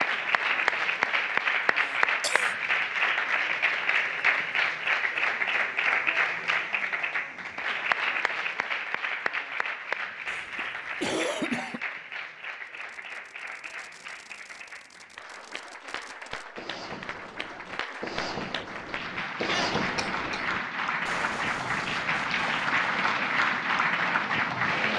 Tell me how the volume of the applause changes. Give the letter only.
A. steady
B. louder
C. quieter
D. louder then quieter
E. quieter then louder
E.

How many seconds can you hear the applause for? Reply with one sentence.
The applause can be heard for 25 seconds in total.